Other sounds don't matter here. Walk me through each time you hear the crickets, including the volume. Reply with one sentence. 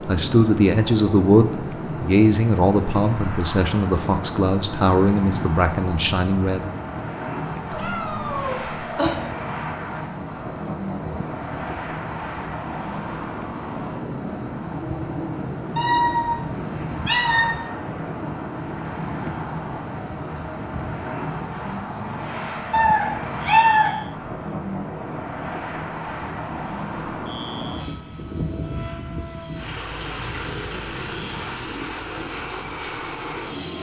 You can hear the crickets from 0.0 to 33.5 s, at a steady volume.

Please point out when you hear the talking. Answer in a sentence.
You can hear the talking from 0.1 to 6.7 s.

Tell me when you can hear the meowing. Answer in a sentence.
You can hear the meowing from 7.7 to 9.2 s, from 15.8 to 17.6 s and from 22.7 to 23.9 s.